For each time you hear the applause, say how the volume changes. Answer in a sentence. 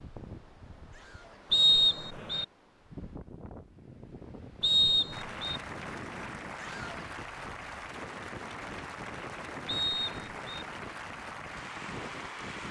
The applause can be heard from 5.1 to 12.6 s, at a steady volume.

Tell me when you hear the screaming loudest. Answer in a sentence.
The loudest moment of the screaming is at 7 seconds.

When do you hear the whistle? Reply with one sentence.
The whistle can be heard from 1.5 to 2.5 s, from 4.6 to 5.6 s and from 9.7 to 10.7 s.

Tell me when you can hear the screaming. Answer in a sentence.
You can hear the screaming from 0.9 to 1.4 s and from 6.5 to 7.1 s.